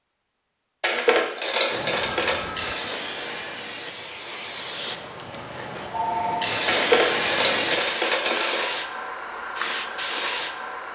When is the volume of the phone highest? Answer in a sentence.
The volume of the phone peaks at 6 seconds.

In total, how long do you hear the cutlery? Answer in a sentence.
You can hear the cutlery for 4 seconds altogether.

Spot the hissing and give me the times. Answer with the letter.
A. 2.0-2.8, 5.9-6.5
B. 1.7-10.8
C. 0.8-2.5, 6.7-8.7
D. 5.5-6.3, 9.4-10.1
B.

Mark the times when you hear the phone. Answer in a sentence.
The phone can be heard from 2.0 to 2.8 s and from 5.9 to 6.5 s.